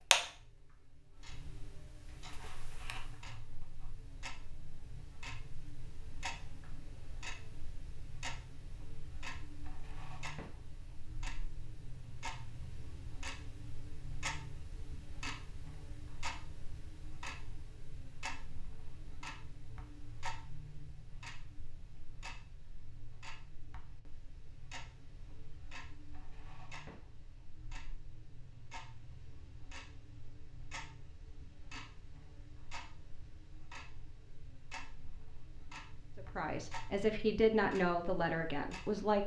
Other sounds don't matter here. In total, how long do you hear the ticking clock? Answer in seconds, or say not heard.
39 s.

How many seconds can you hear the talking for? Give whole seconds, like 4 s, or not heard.
3 s.